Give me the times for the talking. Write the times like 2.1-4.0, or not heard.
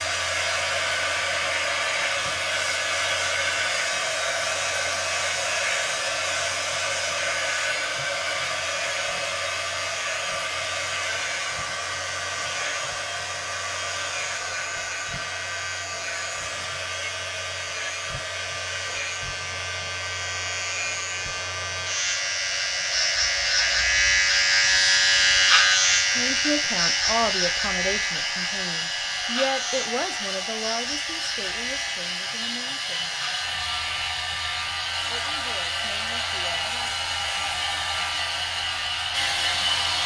26.1-33.1, 35.1-37.0.